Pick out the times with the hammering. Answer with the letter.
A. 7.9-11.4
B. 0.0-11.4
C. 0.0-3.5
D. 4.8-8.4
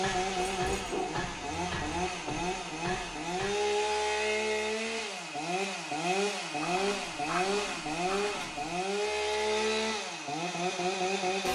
C.